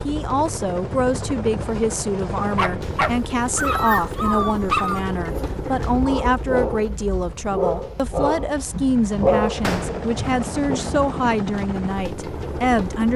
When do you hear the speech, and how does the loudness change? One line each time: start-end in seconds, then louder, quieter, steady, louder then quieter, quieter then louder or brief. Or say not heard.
0.1-13.1 steady.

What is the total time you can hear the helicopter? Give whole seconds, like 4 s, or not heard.
13 s.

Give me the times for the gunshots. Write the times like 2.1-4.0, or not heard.
9.6-10.1.